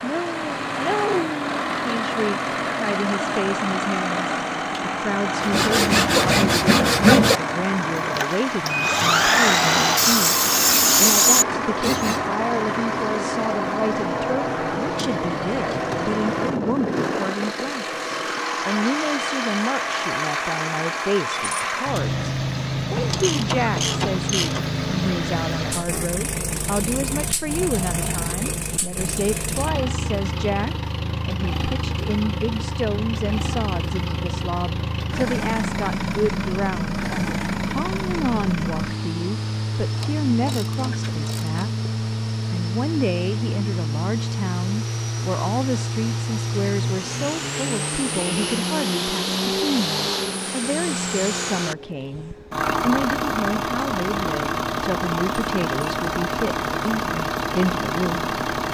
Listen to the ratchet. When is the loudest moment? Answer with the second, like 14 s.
24 s.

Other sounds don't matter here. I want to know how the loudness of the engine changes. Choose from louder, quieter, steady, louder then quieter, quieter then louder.
steady.